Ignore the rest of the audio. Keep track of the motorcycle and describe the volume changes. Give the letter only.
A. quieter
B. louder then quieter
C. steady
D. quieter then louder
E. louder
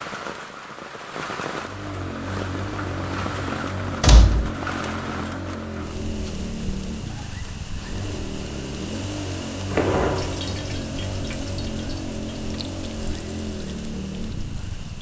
C.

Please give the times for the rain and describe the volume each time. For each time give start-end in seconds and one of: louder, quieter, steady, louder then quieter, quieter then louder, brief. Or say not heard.
0.0-14.9 quieter.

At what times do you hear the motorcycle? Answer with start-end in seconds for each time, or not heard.
1.5-14.9.